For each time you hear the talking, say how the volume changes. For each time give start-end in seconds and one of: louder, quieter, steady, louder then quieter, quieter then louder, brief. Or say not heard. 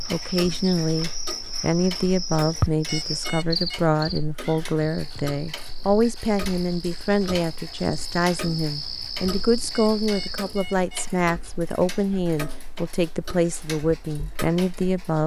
0.1-15.2 steady.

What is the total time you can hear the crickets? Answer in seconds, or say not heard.
11 s.